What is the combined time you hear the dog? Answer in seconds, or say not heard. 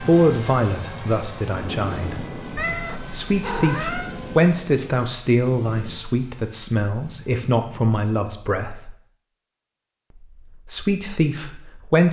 not heard.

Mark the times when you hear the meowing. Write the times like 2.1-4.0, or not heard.
2.5-4.2.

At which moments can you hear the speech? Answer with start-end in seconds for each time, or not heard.
0.0-2.4, 3.1-8.9, 10.7-12.0.